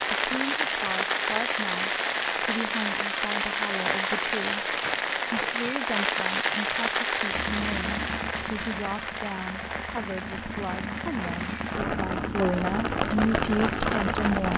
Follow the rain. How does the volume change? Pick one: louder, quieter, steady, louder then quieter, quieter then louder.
quieter then louder.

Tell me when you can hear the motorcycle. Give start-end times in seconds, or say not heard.
7.3-14.5.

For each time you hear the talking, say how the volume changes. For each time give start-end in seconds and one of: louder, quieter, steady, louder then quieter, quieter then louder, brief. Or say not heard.
0.1-14.5 louder.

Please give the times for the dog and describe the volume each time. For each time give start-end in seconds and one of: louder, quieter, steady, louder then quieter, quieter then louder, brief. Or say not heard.
not heard.